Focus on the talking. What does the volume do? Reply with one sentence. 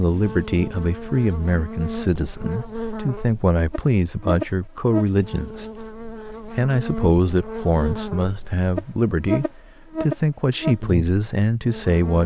The loudness of the talking stays about the same.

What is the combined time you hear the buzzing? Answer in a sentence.
You can hear the buzzing for 12 seconds altogether.